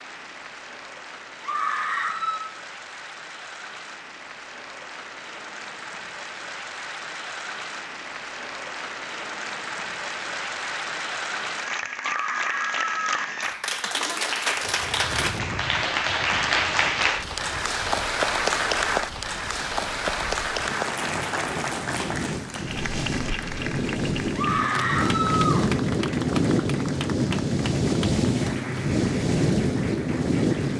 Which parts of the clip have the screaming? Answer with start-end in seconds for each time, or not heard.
1.4-2.5, 12.0-13.3, 24.4-25.6.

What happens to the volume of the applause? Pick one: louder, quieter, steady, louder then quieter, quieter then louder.
louder then quieter.